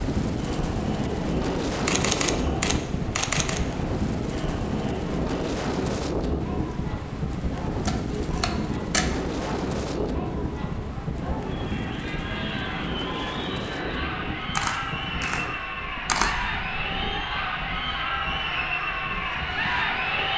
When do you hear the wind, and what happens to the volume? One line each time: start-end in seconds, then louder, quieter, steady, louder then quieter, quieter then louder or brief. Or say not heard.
0.0-20.3 quieter.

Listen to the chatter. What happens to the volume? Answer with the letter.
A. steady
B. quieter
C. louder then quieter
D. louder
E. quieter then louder
D.